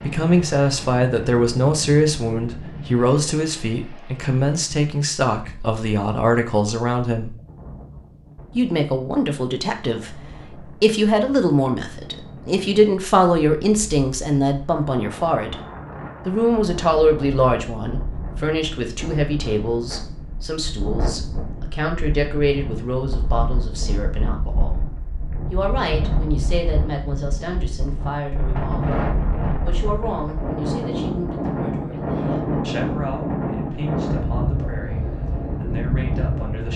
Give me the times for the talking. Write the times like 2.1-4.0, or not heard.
0.0-7.3, 8.6-10.2, 10.8-15.6, 16.2-24.8, 25.5-36.7.